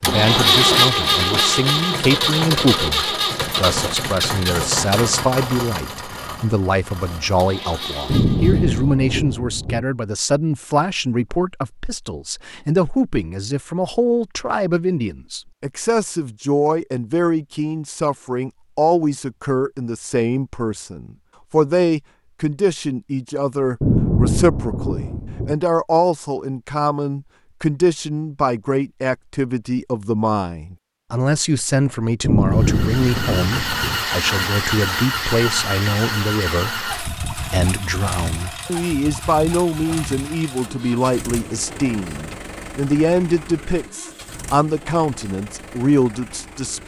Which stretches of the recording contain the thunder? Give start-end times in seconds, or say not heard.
8.1-9.8, 23.8-25.6, 32.2-34.0.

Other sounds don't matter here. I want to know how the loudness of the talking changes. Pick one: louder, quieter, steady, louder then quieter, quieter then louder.
steady.